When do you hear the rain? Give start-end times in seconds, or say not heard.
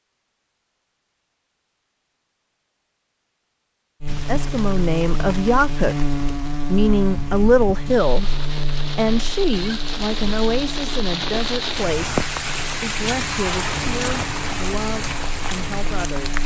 4.0-16.4.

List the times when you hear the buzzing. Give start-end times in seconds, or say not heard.
4.0-16.4.